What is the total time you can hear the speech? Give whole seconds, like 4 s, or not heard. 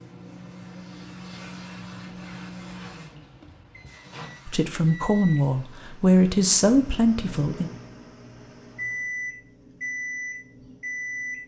3 s.